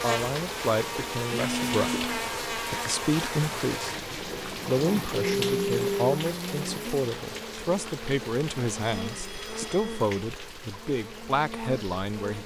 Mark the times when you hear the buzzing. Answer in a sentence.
The buzzing can be heard from 0.0 to 12.4 s.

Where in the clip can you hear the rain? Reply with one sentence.
You can hear the rain from 0.0 to 12.4 s.